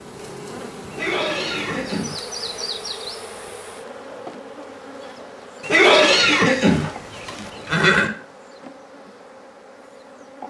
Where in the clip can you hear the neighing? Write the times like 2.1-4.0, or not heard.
0.9-2.8, 5.6-8.1.